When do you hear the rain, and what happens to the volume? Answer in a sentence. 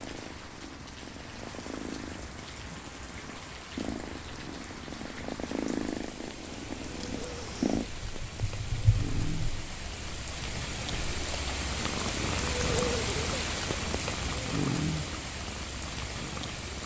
You can hear the rain from 0.0 to 16.8 s, getting louder.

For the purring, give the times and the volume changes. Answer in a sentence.
The purring can be heard from 0.0 to 16.8 s, getting louder then quieter.